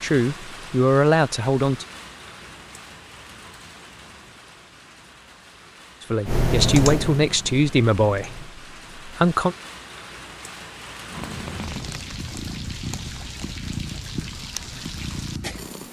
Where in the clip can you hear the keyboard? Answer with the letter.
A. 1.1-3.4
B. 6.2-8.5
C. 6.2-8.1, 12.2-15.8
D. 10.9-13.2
B.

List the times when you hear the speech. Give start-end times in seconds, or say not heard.
0.0-1.9, 6.0-9.6.